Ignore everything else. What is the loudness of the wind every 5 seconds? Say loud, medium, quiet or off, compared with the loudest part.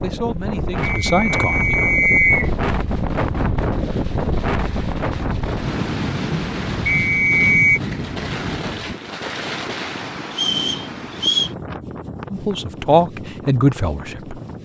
loud, loud, medium.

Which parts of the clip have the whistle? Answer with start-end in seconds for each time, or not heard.
0.8-2.5, 6.8-7.8, 10.3-11.5.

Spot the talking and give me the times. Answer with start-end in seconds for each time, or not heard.
0.0-1.8, 12.3-14.6.